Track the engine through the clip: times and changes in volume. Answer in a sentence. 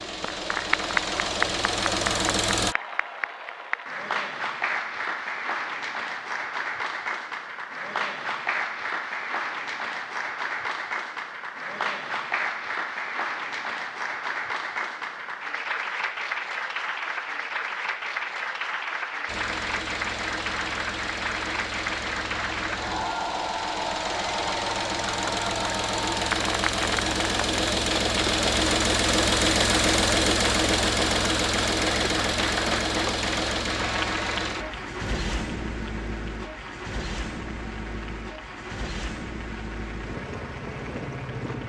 You can hear the engine briefly from 0.0 to 2.8 s; and from 19.2 to 41.6 s, getting louder then quieter.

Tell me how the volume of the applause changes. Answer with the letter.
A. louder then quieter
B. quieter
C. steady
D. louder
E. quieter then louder
B.